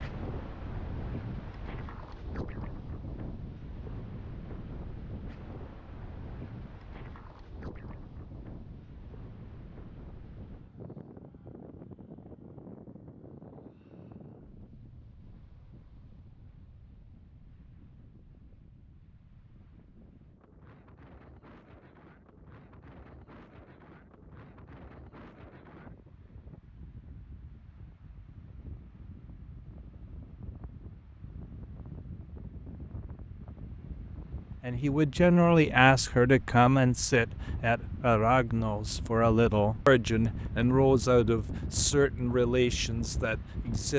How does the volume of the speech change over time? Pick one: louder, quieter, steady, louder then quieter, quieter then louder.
quieter.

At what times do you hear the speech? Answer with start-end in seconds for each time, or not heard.
34.6-43.9.